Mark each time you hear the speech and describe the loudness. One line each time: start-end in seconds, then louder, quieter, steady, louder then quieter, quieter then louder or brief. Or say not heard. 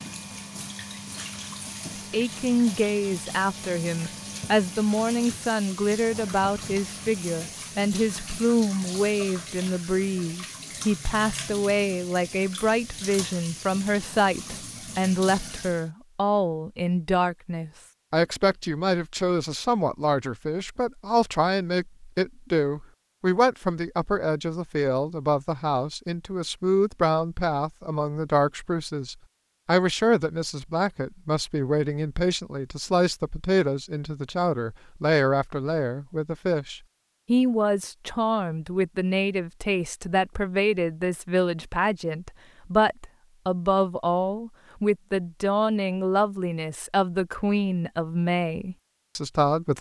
2.1-49.7 steady.